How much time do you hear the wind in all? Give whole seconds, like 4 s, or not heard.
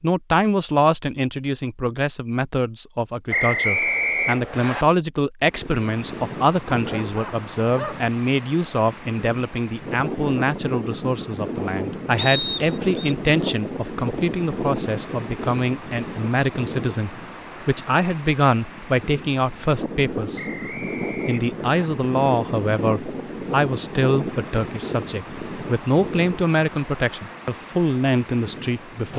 24 s.